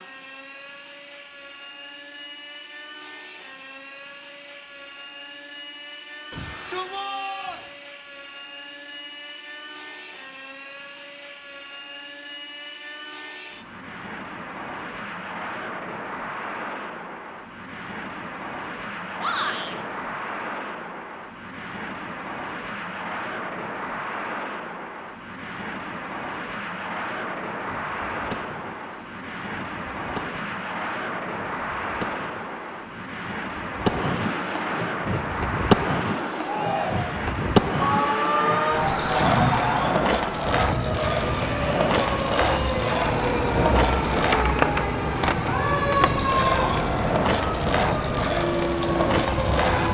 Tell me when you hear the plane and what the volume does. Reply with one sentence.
The plane can be heard from 0.0 to 49.8 s, getting louder.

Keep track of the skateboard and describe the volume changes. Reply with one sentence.
The loudness of the skateboard goes up.